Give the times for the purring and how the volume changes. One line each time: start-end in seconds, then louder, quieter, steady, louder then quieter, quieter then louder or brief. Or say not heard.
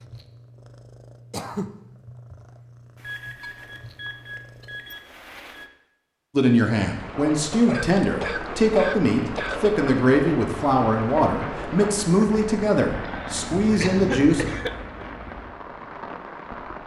0.0-4.8 steady.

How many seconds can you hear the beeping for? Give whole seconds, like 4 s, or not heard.
4 s.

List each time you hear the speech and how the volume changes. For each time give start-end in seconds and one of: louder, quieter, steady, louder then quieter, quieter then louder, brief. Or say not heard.
6.3-14.4 steady.